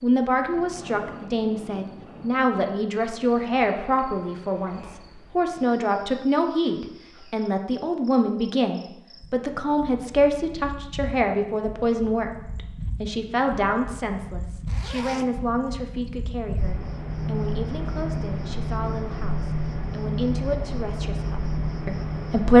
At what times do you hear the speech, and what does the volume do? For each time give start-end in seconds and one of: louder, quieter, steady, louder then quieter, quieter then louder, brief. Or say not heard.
0.0-22.5 quieter.